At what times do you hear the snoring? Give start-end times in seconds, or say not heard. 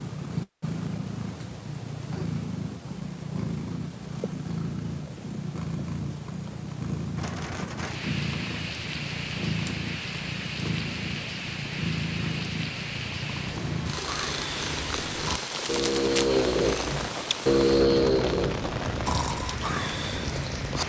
13.9-20.4.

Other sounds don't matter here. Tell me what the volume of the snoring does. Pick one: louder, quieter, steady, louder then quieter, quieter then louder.
louder then quieter.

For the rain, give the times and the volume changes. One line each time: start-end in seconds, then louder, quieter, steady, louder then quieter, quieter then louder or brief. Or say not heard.
7.2-20.8 steady.